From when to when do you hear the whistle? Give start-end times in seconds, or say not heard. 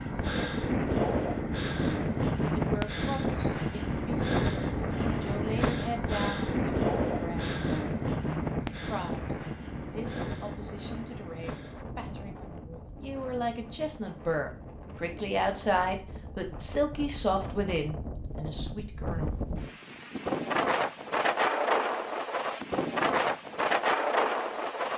not heard.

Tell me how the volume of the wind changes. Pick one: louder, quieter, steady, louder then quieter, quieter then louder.
quieter then louder.